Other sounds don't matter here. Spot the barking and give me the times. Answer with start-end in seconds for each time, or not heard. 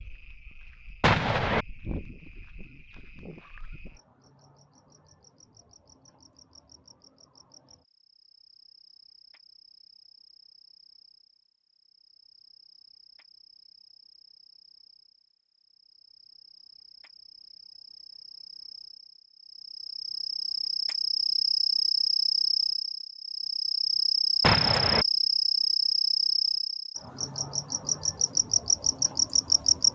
not heard.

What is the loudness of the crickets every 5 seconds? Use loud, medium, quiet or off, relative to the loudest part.
quiet, quiet, quiet, quiet, loud, loud.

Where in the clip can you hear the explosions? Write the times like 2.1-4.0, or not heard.
1.0-1.6, 24.4-25.1.